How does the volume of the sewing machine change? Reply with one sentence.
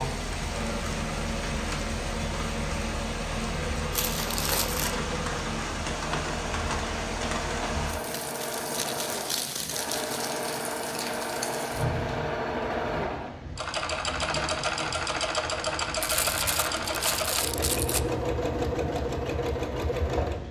The volume of the sewing machine goes up.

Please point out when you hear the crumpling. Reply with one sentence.
The crumpling can be heard from 3.9 to 5.0 s, from 8.1 to 10.2 s and from 16.0 to 18.0 s.